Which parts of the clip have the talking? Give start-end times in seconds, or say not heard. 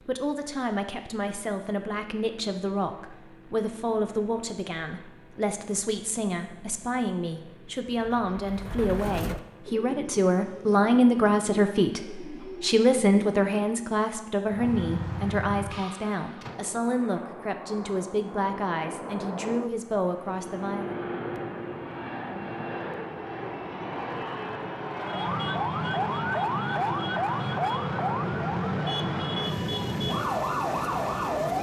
0.1-21.0.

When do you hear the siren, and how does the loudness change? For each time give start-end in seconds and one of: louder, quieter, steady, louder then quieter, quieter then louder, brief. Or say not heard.
14.4-16.6 brief
25.0-31.5 steady.